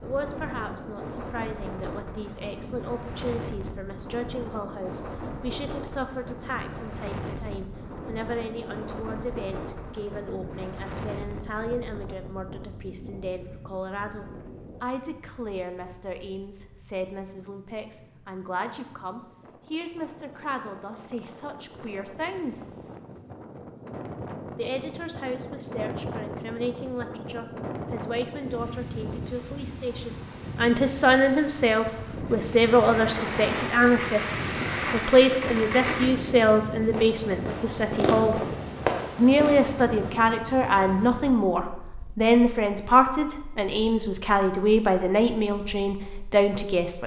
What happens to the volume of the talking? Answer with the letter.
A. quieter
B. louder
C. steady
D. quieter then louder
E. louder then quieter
B.